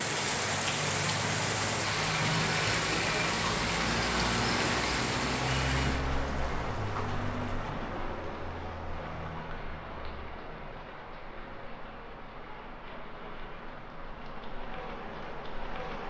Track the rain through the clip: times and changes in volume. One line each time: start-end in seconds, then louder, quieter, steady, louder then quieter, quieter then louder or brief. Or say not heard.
0.0-16.0 quieter.